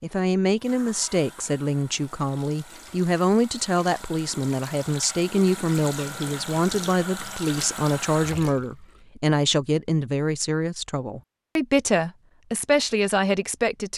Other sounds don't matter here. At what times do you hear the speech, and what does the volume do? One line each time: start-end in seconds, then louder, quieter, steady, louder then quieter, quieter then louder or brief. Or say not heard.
0.0-13.9 steady.